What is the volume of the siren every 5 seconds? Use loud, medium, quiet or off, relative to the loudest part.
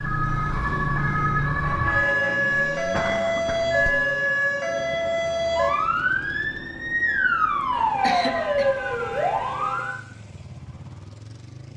loud, loud, off.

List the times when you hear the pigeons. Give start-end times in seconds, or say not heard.
not heard.